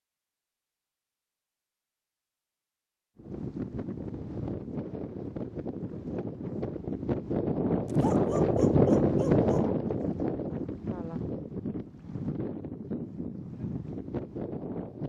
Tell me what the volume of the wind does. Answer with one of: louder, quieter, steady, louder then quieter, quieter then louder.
louder then quieter.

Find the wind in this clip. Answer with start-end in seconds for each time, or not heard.
3.1-15.0.